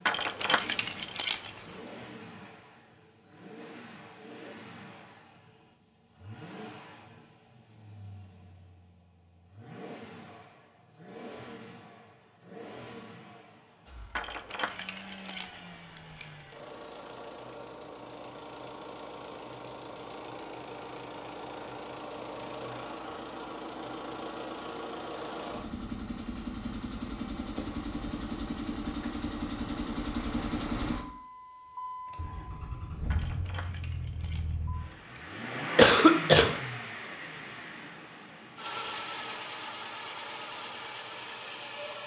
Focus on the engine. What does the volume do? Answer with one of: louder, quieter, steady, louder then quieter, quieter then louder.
louder.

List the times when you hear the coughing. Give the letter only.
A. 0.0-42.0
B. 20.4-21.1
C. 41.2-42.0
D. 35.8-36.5
D.